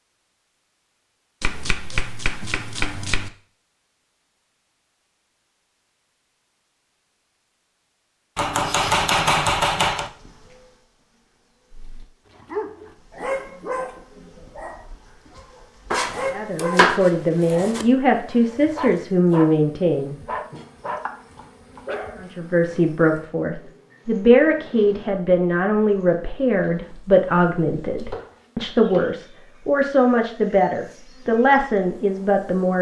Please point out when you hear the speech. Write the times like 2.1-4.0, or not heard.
16.3-20.1, 22.1-32.7.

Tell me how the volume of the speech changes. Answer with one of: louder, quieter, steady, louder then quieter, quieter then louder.
steady.